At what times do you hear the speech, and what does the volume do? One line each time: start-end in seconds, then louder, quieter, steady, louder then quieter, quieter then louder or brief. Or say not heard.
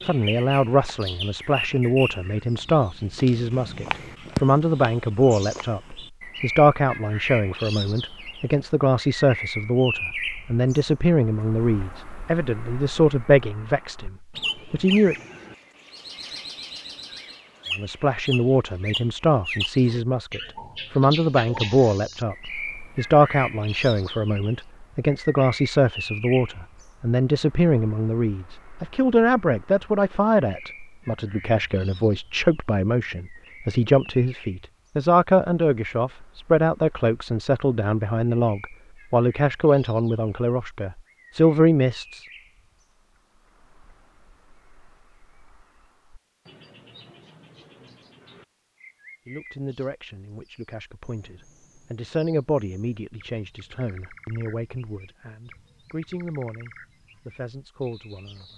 0.1-15.2 steady
17.8-42.2 steady
49.2-58.5 louder then quieter.